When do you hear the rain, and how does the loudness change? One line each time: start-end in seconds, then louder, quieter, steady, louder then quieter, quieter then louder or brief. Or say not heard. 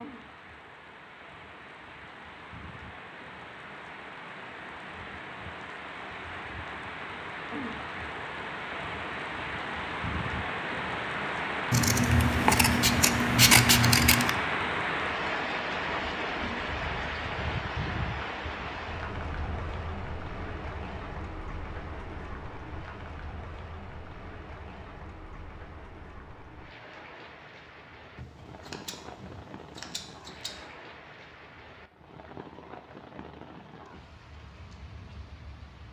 0.0-35.8 louder then quieter.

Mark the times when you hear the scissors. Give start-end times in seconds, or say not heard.
11.7-14.3, 28.1-30.6.